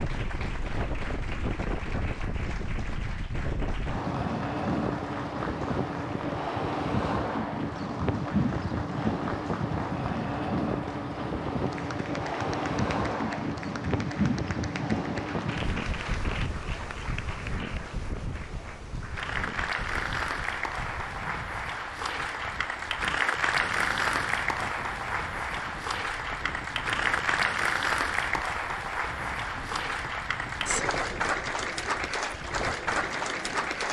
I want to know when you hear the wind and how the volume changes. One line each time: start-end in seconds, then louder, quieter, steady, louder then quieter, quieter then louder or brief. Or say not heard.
0.0-33.8 quieter.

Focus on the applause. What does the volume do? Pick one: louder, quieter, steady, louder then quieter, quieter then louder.
louder.